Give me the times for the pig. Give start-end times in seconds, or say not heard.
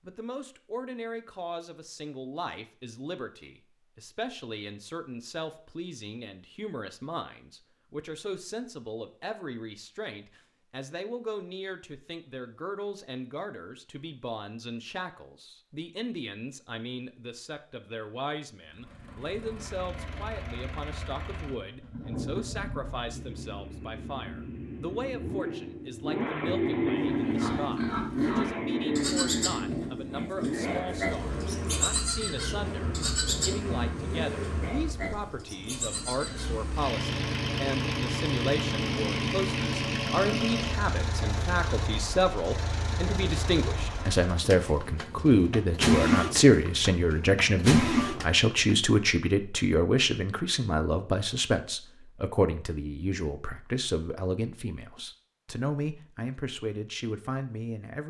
27.0-36.5.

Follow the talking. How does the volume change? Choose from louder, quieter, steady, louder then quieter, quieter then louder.
louder.